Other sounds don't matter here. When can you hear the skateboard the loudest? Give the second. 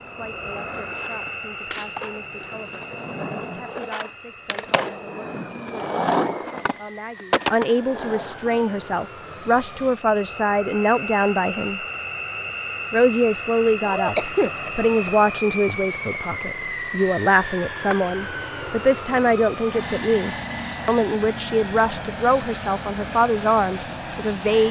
6 s.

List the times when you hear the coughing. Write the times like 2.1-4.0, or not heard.
13.8-14.6.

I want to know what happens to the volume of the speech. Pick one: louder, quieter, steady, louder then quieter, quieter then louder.
louder.